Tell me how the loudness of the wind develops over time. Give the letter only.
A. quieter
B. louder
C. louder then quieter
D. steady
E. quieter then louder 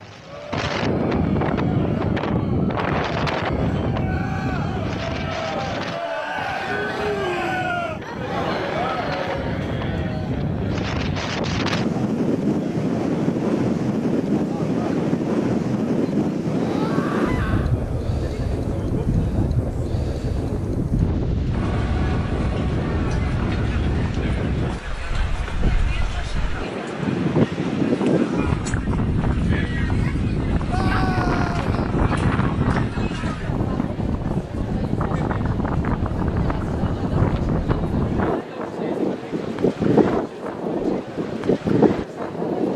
D.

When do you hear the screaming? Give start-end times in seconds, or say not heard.
16.4-17.8, 30.6-31.9.